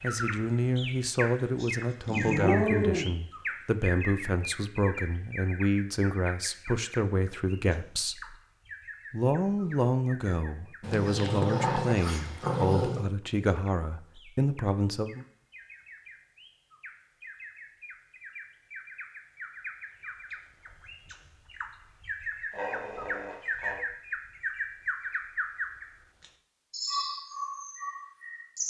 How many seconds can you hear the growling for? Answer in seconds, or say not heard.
5 s.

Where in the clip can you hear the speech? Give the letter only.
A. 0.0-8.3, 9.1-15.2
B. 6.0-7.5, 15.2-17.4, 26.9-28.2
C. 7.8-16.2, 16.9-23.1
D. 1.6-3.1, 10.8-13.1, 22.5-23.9
A.